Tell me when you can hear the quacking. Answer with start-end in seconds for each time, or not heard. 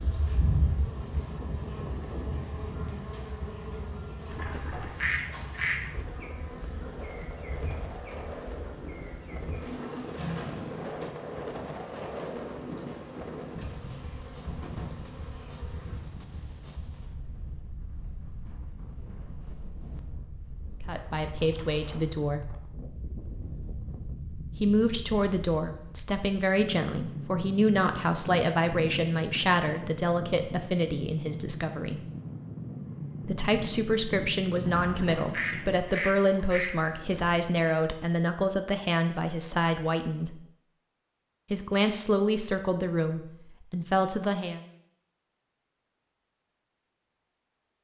4.3-6.0, 34.6-37.5.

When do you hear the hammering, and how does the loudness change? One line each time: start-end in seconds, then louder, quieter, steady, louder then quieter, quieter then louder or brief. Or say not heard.
not heard.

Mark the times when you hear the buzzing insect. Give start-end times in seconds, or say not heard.
0.0-16.0.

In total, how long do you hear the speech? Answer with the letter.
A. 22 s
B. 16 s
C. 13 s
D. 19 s
D.